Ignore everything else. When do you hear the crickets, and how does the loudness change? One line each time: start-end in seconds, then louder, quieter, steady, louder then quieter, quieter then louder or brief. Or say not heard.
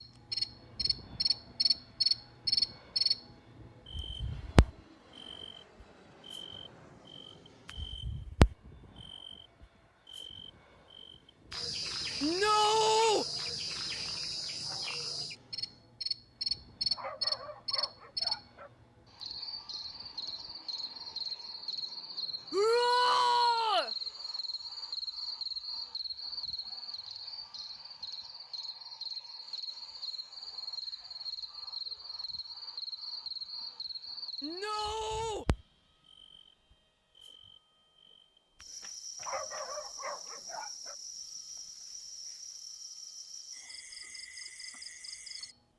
0.0-45.6 quieter.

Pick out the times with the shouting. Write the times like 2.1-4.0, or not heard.
12.2-13.2, 22.5-23.9, 34.4-35.5.